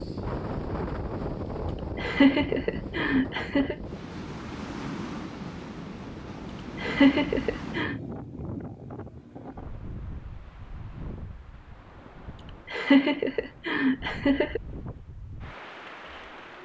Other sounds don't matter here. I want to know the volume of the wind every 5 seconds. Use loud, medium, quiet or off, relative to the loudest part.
loud, loud, medium, medium.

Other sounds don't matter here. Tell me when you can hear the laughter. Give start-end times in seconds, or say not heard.
1.9-3.8, 6.8-8.0, 12.7-14.6.